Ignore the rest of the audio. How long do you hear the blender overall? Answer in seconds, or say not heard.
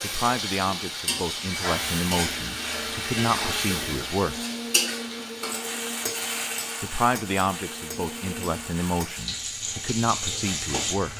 7 s.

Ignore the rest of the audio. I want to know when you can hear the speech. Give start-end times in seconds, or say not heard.
0.0-4.4, 6.8-11.1.